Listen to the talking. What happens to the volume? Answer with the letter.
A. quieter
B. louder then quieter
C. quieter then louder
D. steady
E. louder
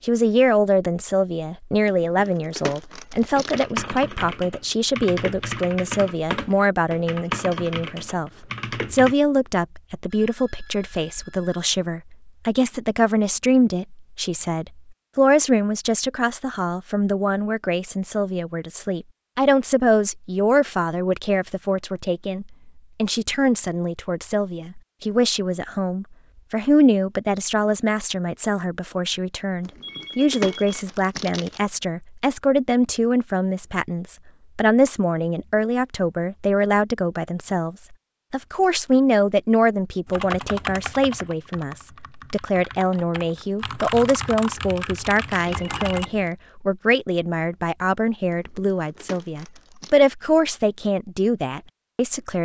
D.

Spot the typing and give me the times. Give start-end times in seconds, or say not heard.
3.1-9.2, 40.0-46.0.